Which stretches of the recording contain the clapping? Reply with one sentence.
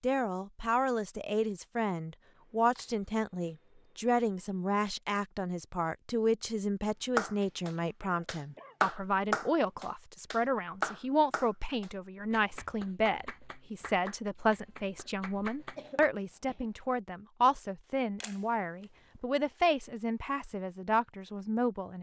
The clapping can be heard from 7.2 to 16.1 s.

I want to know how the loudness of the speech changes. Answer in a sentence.
The loudness of the speech stays about the same.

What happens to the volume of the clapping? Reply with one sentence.
The volume of the clapping goes down.